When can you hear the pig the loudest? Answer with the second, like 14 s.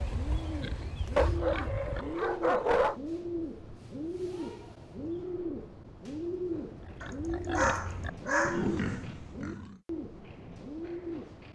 9 s.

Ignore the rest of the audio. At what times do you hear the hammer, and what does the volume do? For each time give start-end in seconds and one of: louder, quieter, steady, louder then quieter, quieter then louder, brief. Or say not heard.
not heard.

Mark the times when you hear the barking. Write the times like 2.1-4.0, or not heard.
1.1-3.0, 7.0-8.7.